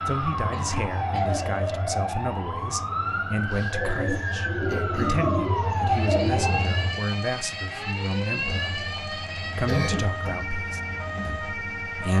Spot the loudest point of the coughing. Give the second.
10 s.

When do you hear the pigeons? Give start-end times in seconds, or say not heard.
3.7-6.7.